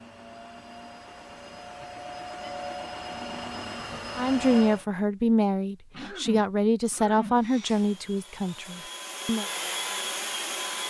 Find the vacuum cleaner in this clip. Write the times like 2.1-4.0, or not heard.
0.0-4.8, 7.3-10.8.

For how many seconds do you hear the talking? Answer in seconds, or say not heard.
5 s.